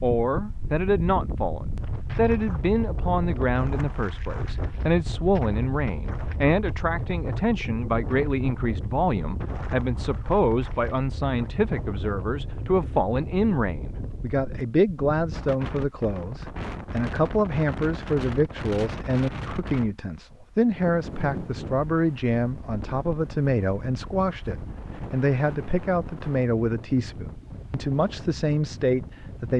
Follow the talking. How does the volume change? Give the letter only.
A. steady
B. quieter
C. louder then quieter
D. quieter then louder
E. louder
A.